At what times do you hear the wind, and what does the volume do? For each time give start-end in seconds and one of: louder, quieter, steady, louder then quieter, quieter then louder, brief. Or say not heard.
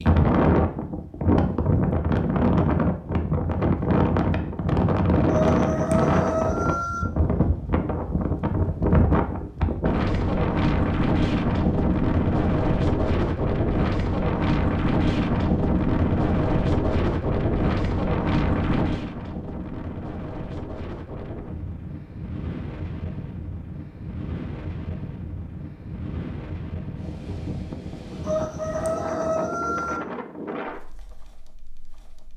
0.0-32.3 quieter.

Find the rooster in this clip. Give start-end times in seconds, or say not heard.
5.3-7.0, 28.2-30.0.